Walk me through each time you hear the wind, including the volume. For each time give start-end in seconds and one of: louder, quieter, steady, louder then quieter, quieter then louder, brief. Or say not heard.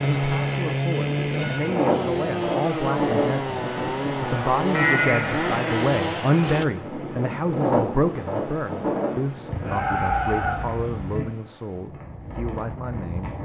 0.0-13.4 quieter.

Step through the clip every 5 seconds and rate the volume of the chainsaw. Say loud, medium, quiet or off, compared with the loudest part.
loud, loud, off.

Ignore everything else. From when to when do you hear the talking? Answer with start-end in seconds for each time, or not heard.
0.1-13.3.